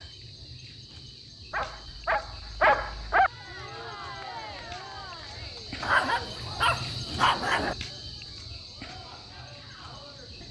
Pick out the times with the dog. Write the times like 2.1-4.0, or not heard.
1.5-3.3, 5.8-7.8.